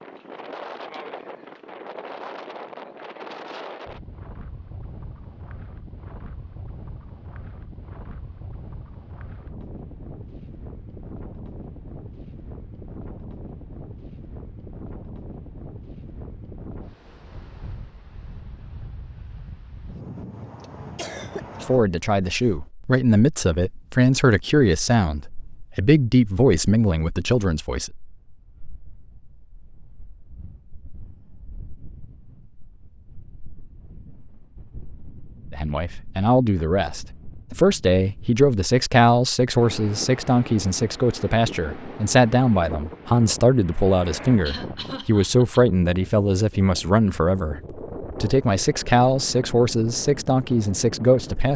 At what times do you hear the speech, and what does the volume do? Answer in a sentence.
You can hear the speech from 21.6 to 27.9 s, at a steady volume; and from 35.5 to 51.5 s, at a steady volume.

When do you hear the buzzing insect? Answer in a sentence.
You can't hear the buzzing insect here.